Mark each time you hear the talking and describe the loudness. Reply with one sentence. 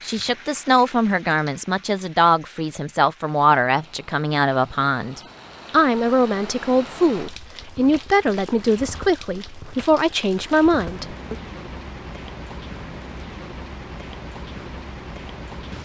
You can hear the talking from 0.0 to 11.3 s, at a steady volume.